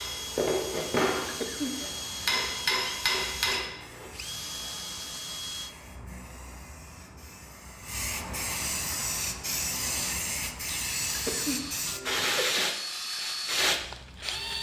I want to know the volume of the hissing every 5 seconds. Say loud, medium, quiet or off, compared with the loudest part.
quiet, medium, loud.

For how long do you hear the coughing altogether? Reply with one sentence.
You can hear the coughing for 3 seconds altogether.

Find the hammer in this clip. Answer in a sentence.
The hammer can be heard from 0.0 to 4.1 s.